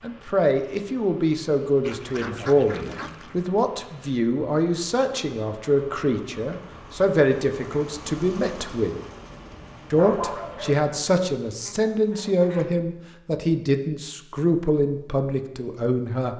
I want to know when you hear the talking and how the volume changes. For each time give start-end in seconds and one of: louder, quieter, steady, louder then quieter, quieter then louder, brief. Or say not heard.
0.0-8.9 steady
9.9-16.3 steady.